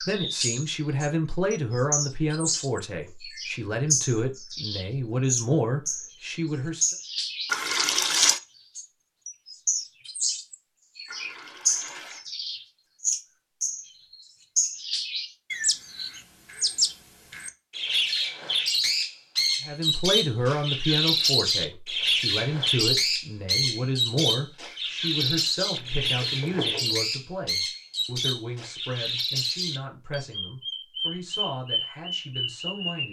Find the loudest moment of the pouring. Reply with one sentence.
The volume of the pouring peaks at 8 seconds.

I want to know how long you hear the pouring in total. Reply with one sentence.
The pouring can be heard for 3 seconds in total.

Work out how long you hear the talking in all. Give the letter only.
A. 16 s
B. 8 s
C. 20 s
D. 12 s
C.